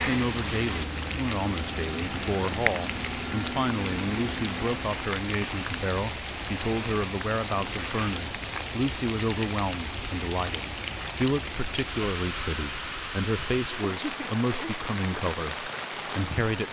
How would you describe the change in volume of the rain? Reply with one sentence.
The loudness of the rain stays about the same.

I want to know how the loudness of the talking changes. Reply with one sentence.
The volume of the talking stays about the same.